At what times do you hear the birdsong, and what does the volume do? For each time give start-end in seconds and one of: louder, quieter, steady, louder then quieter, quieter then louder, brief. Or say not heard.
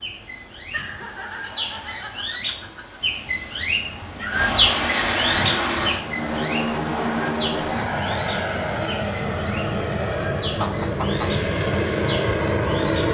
0.0-13.0 louder then quieter.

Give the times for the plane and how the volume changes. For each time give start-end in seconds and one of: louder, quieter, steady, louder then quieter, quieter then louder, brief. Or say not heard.
0.0-13.0 louder.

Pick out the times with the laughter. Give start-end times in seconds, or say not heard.
0.6-3.0, 10.4-11.3.